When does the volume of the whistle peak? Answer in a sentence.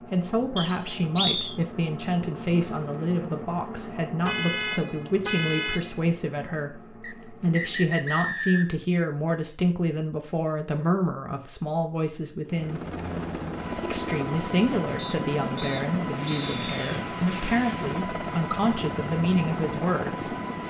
The loudest moment of the whistle is at 1 second.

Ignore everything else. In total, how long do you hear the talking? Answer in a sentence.
The talking can be heard for 19 seconds in total.